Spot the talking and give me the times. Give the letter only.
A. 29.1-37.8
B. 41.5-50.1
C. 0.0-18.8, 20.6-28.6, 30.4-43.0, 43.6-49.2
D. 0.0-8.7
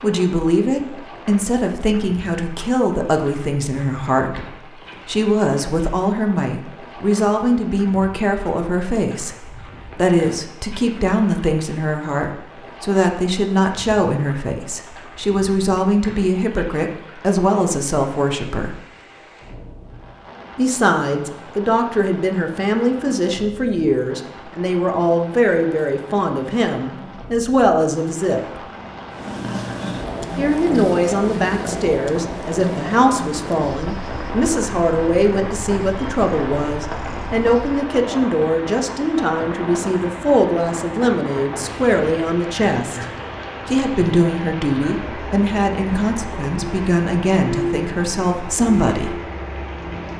C.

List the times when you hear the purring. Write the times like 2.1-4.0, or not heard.
29.1-37.8.